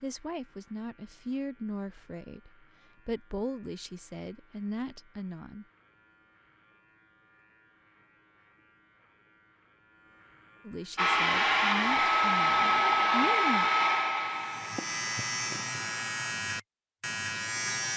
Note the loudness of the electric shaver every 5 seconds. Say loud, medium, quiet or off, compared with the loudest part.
quiet, quiet, medium, loud.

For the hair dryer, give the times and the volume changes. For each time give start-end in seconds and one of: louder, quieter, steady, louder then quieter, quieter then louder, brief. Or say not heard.
10.9-16.3 quieter.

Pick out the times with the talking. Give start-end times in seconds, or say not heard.
0.0-5.7, 10.7-13.7.